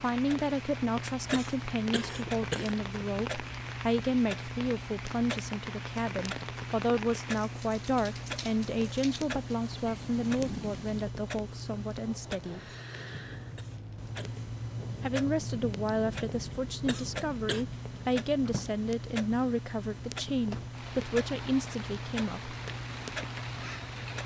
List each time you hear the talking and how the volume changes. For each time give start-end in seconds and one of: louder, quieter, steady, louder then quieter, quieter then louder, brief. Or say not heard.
0.0-12.6 steady
15.0-22.6 steady.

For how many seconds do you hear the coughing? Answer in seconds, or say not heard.
3 s.